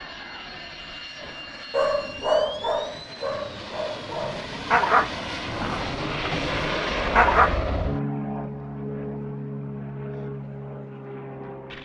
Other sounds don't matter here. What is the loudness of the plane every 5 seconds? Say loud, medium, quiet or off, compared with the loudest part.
medium, loud, medium.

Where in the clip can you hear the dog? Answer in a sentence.
The dog can be heard from 1.2 to 7.5 s.